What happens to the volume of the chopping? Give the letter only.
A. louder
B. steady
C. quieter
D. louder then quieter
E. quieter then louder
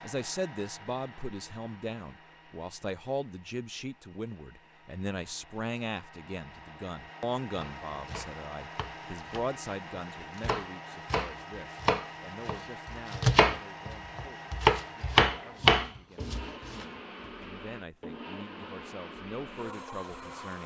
A.